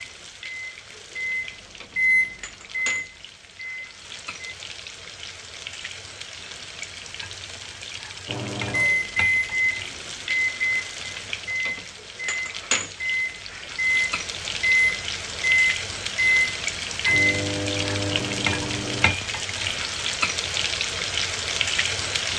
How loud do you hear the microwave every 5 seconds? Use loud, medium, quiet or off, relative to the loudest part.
loud, loud, loud, loud, off.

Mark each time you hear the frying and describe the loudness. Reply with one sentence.
The frying can be heard from 0.0 to 22.3 s, getting louder.